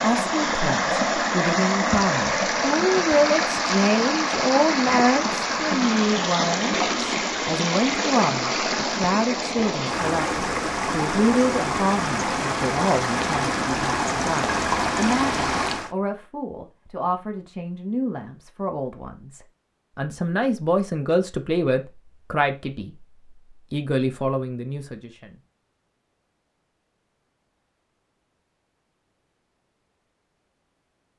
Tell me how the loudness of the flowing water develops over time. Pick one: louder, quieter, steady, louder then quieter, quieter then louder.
steady.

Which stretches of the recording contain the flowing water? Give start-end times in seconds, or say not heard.
0.0-15.9.